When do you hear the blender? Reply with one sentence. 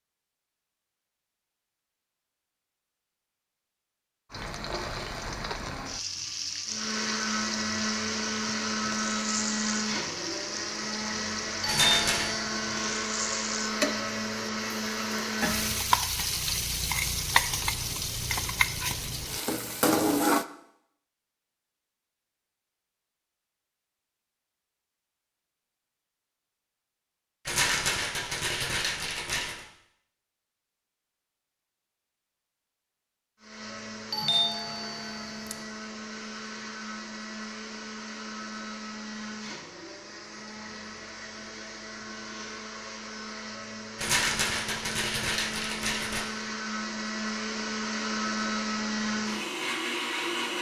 You can hear the blender from 6.7 to 15.8 s and from 33.4 to 50.5 s.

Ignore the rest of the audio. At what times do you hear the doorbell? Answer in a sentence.
The doorbell can be heard from 11.6 to 12.8 s and from 34.1 to 35.6 s.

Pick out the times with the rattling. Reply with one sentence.
The rattling can be heard from 11.7 to 12.3 s, from 27.4 to 29.6 s and from 44.0 to 46.2 s.